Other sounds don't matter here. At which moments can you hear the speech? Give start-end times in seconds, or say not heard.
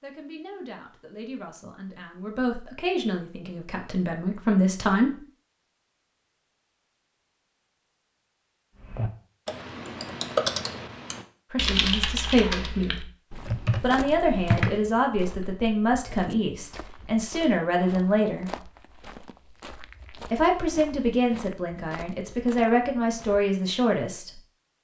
0.0-5.1, 11.5-13.1, 13.8-18.5, 20.3-24.3.